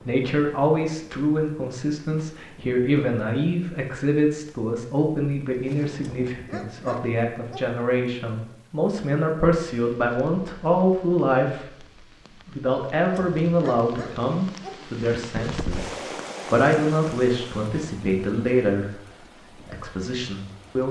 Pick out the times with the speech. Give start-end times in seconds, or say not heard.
0.1-20.8.